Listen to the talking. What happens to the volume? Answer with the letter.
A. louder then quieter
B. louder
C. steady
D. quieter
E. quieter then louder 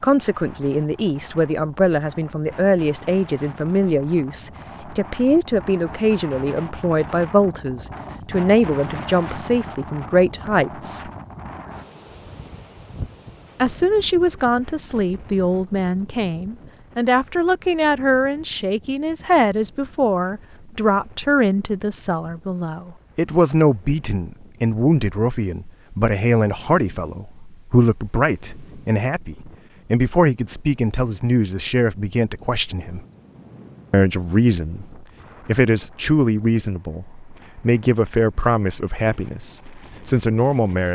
C.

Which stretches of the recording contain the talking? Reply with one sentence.
The talking can be heard from 0.0 to 11.1 s, from 13.6 to 33.0 s and from 33.9 to 40.9 s.